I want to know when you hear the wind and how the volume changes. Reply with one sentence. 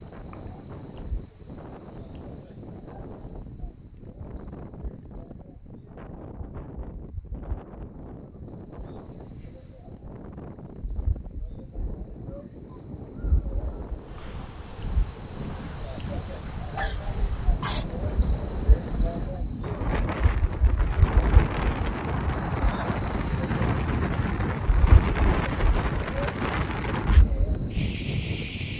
The wind can be heard from 0.0 to 28.7 s, getting louder.